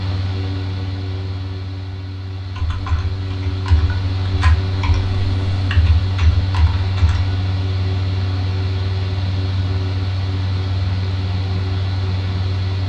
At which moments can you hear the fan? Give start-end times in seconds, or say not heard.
0.0-12.8.